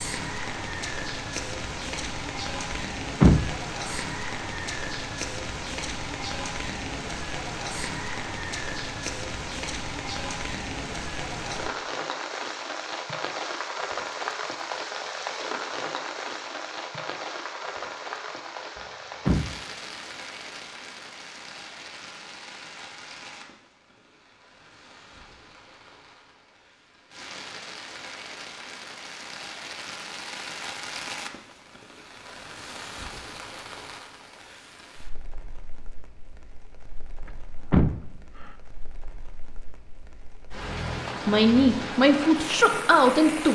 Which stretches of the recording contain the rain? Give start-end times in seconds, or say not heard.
0.0-43.4.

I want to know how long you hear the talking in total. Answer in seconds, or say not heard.
2 s.